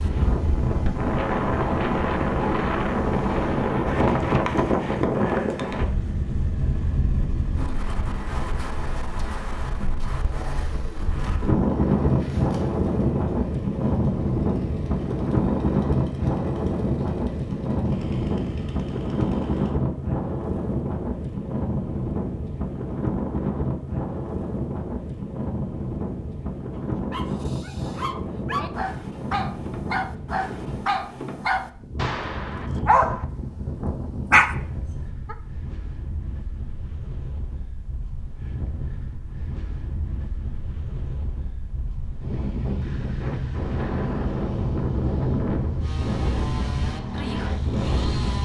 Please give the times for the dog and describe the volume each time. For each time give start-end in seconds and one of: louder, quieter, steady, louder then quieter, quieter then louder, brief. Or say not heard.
26.8-35.4 louder.